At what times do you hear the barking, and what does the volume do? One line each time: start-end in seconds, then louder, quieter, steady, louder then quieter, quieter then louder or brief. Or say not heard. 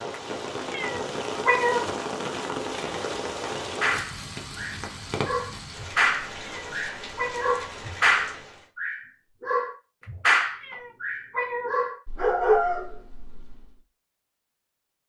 3.6-13.7 louder.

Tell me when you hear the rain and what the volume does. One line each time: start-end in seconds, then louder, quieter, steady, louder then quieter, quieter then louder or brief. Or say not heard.
0.0-8.7 quieter.